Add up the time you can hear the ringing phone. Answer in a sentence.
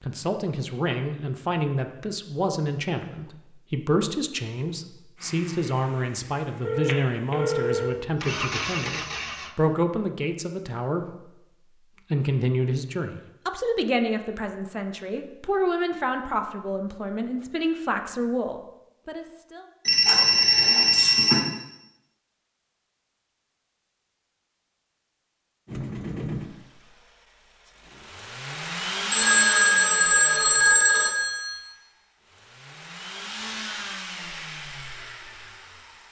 The ringing phone can be heard for 5 seconds in total.